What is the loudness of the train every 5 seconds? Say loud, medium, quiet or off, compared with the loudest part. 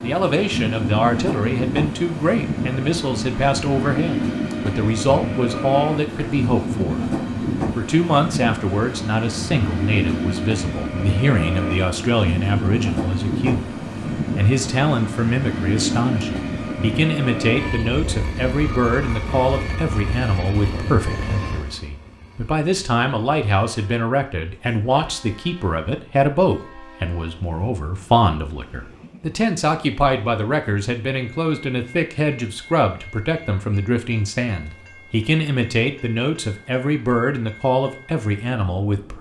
loud, loud, loud, loud, medium, quiet, quiet, quiet.